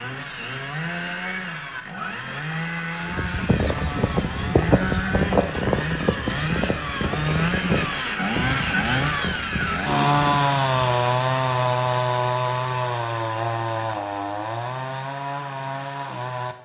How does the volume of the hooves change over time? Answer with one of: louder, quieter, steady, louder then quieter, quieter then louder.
quieter.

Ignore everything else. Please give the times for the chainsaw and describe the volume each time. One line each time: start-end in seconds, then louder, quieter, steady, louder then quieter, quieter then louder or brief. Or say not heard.
0.0-16.5 louder then quieter.